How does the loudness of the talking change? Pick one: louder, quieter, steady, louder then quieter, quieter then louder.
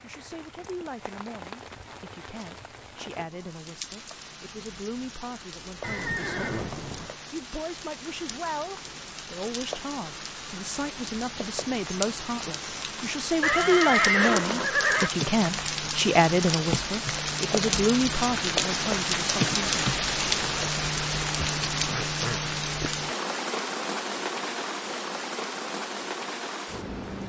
louder.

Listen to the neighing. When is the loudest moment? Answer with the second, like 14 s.
14 s.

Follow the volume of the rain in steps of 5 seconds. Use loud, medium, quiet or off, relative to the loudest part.
quiet, quiet, medium, loud, loud, medium.